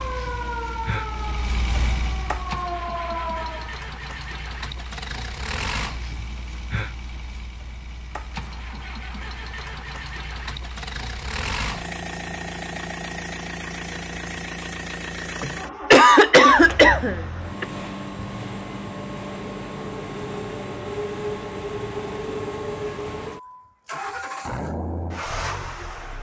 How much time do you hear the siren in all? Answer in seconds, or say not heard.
4 s.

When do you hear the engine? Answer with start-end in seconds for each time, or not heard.
0.0-26.1.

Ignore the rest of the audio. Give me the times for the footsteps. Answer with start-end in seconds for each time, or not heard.
not heard.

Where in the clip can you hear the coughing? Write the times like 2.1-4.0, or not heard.
15.4-17.6.